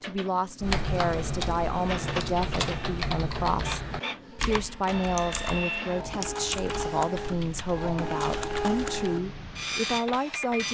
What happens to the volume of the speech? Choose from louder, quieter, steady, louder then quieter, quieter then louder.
steady.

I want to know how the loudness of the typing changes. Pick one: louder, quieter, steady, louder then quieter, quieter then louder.
quieter.